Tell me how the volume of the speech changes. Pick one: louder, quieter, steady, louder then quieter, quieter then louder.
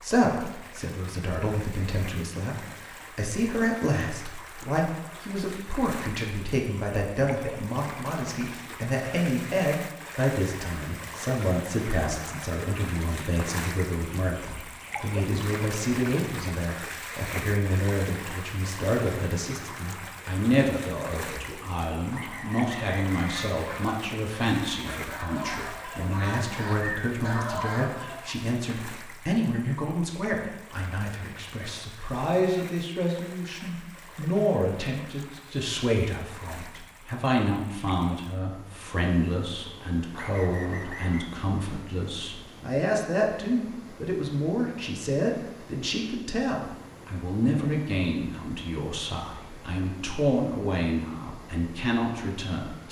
steady.